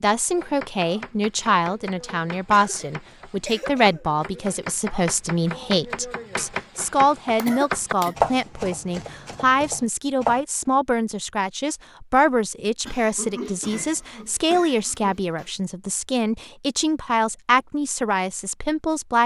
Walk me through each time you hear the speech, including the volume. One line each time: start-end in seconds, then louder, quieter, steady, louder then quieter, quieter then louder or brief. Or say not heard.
0.0-19.2 steady.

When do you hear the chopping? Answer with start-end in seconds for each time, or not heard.
0.3-10.4.